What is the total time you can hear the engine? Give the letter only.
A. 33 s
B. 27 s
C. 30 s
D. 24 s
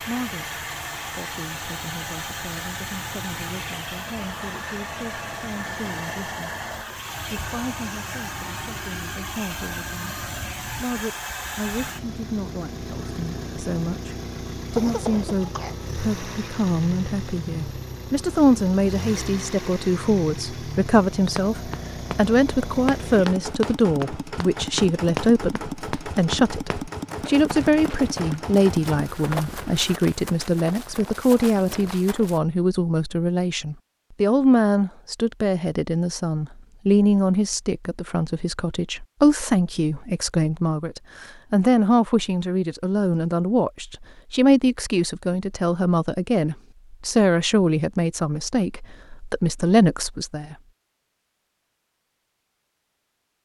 C.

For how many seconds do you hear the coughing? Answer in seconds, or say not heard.
2 s.